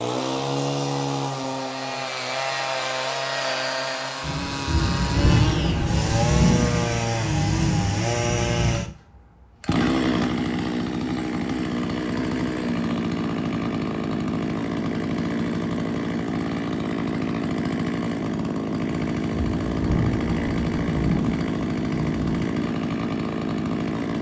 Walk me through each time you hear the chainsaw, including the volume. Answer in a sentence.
The chainsaw can be heard from 0.0 to 24.1 s, at a steady volume.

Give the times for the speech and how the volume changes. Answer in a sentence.
The speech can't be heard in this clip.